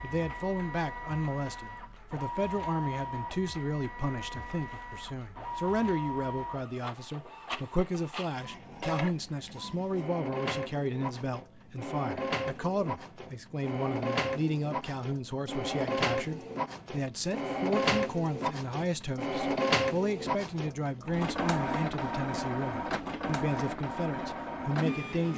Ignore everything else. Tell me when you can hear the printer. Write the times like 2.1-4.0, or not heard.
0.0-25.3.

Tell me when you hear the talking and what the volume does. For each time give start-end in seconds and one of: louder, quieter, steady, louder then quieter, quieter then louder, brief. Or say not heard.
0.0-25.3 steady.